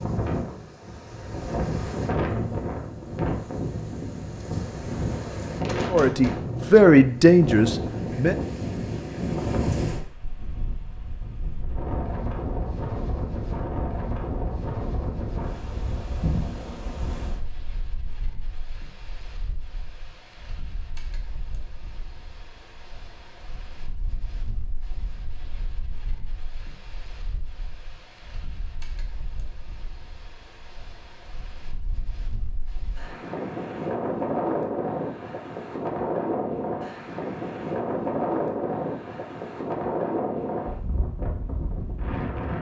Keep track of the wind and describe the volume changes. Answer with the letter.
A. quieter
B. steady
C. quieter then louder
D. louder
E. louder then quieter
C.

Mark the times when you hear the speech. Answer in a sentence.
You can hear the speech from 5.9 to 8.3 s.